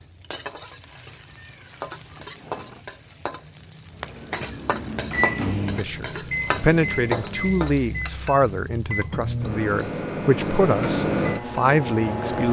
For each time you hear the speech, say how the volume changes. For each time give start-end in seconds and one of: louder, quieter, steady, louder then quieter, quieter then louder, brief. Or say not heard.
5.8-12.4 quieter then louder.